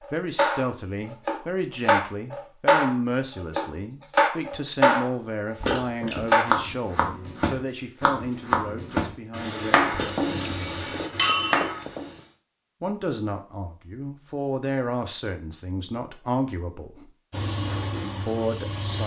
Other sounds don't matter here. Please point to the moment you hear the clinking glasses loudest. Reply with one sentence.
The volume of the clinking glasses peaks at 11 seconds.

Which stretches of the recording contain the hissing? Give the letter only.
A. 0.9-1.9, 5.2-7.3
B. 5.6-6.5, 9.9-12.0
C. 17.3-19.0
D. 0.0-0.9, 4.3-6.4
C.